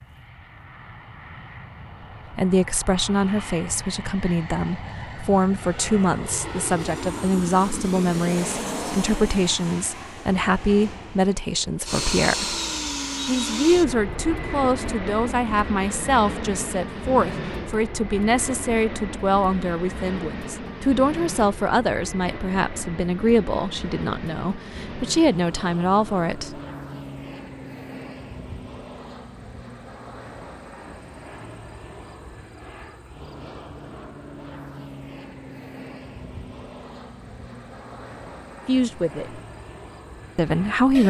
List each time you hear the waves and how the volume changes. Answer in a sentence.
You can't hear the waves here.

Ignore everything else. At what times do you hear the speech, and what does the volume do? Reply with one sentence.
The speech can be heard from 2.4 to 12.6 s, at a steady volume; from 13.2 to 26.6 s, at a steady volume; briefly from 38.6 to 39.4 s; and briefly from 40.4 to 41.0 s.